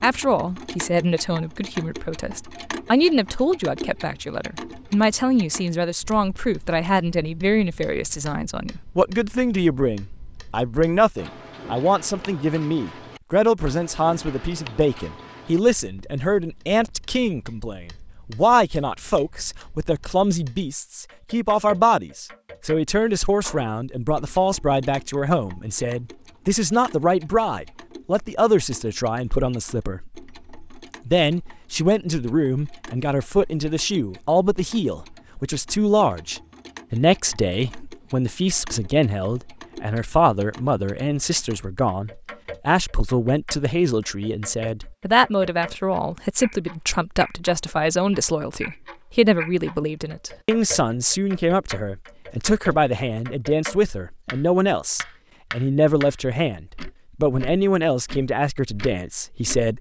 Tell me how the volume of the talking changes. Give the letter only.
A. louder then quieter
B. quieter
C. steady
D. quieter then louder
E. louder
C.